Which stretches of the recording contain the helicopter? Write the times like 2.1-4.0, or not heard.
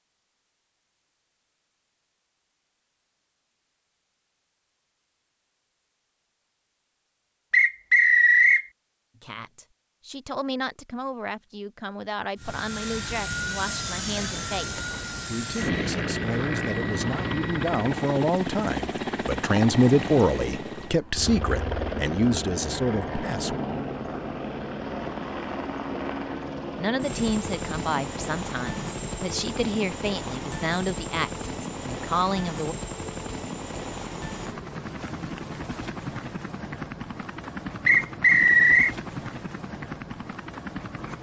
12.3-41.1.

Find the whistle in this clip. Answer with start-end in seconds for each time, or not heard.
7.5-8.7, 37.9-39.0.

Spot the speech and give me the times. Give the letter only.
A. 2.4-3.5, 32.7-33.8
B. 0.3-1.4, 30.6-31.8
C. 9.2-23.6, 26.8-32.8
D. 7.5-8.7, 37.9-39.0
C.